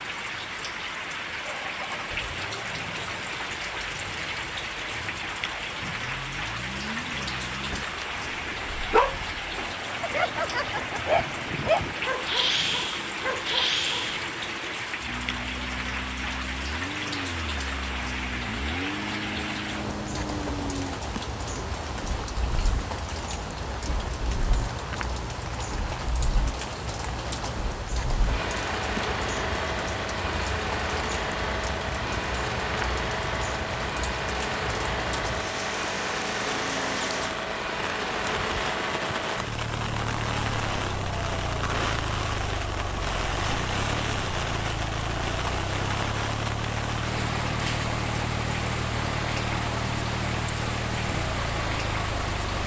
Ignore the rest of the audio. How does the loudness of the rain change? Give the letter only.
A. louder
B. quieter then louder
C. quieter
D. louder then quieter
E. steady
E.